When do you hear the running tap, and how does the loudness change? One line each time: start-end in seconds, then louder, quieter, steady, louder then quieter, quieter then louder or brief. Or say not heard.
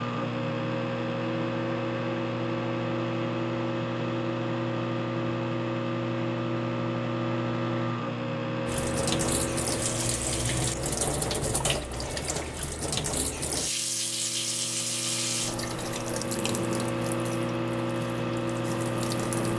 8.7-19.5 quieter.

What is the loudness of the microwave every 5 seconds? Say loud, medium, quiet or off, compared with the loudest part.
loud, loud, medium, loud.